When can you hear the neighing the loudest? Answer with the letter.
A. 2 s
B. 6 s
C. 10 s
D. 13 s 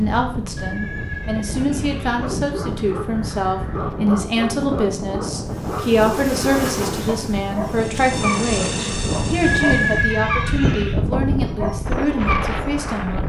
C.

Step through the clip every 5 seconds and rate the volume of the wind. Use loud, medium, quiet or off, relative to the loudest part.
medium, loud, loud.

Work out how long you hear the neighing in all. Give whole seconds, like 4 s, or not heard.
4 s.